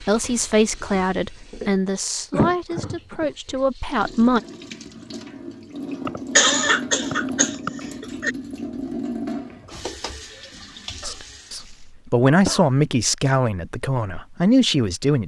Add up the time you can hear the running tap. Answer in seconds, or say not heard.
12 s.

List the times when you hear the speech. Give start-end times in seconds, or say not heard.
0.0-4.4, 11.1-15.2.